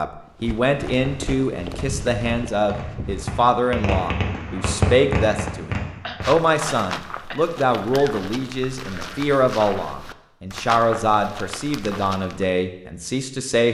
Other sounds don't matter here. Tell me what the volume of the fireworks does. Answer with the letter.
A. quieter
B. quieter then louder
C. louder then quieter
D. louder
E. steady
D.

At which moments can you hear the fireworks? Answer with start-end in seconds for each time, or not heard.
0.8-6.3.